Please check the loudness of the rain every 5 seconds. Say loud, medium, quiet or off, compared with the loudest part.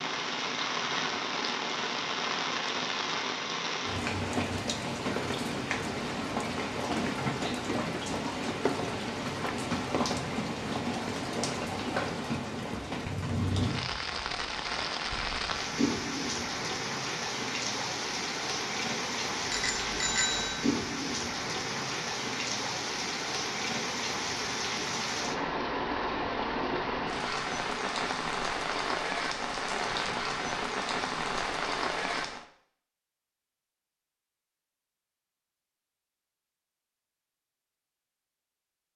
loud, loud, loud, loud, loud, loud, loud, off.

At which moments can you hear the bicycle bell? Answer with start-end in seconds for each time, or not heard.
19.5-20.7.